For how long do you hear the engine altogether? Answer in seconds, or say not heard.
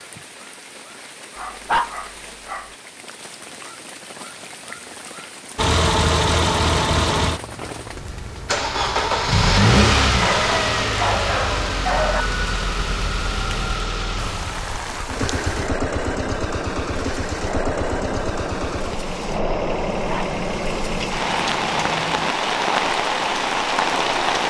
17 s.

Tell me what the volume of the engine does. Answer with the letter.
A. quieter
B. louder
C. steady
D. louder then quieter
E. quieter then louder
A.